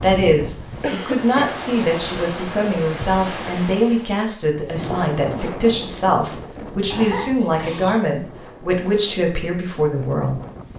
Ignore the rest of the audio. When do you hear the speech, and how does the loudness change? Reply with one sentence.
The speech can be heard from 0.0 to 10.4 s, at a steady volume.